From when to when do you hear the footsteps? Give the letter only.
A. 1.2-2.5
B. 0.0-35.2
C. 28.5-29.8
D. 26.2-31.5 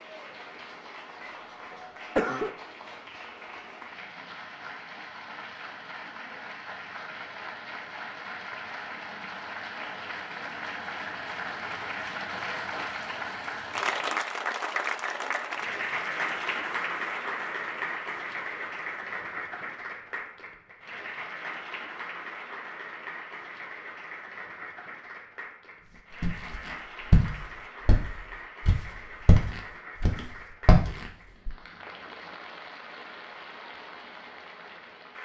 D.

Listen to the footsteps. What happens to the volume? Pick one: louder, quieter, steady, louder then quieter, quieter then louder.
quieter then louder.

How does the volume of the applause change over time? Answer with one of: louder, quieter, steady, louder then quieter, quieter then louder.
louder then quieter.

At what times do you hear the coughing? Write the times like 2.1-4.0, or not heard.
1.2-2.5.